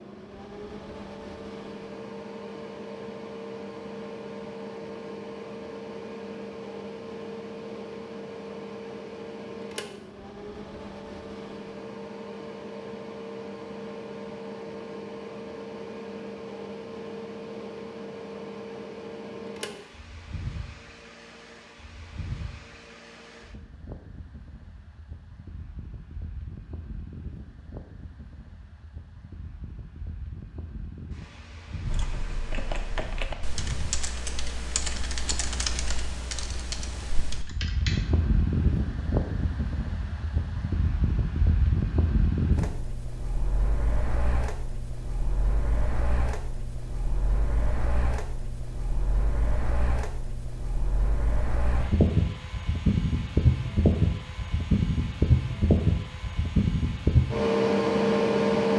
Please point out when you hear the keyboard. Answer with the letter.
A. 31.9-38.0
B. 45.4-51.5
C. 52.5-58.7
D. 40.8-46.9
A.